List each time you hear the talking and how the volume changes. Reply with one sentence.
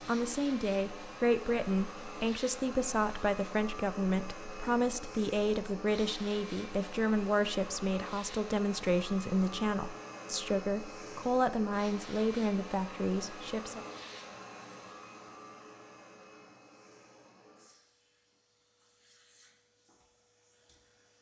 You can hear the talking from 0.1 to 13.8 s, at a steady volume.